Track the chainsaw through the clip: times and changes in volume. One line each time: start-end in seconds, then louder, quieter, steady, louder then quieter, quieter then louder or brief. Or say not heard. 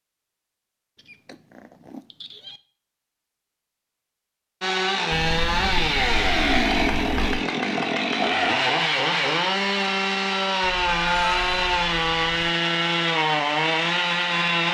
4.6-14.7 steady.